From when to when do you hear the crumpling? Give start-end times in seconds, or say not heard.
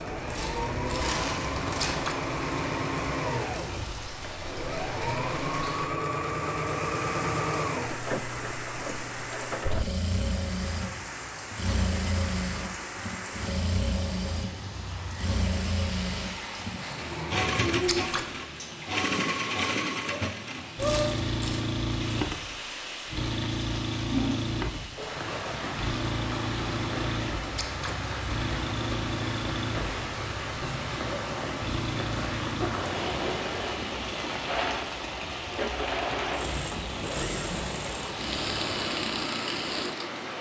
0.2-1.9, 20.8-21.6.